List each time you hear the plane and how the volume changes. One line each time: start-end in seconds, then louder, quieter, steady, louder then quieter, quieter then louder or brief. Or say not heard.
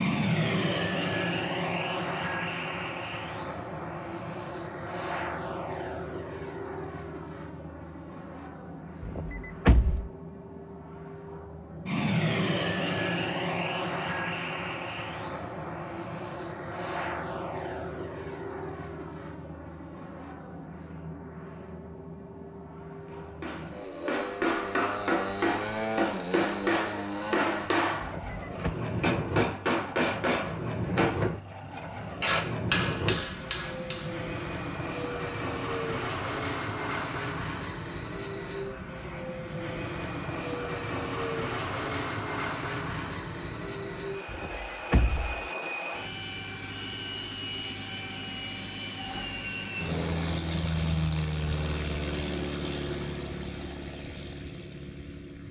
0.0-55.4 steady.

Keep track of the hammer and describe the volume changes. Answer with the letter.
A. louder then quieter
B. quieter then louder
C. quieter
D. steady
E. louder
D.